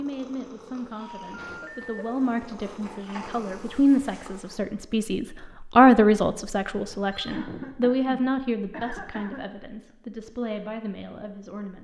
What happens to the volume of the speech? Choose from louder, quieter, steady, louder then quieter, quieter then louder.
louder then quieter.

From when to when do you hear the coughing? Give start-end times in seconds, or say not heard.
1.4-2.0, 7.3-9.6.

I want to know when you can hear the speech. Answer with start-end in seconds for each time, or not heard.
0.0-11.7.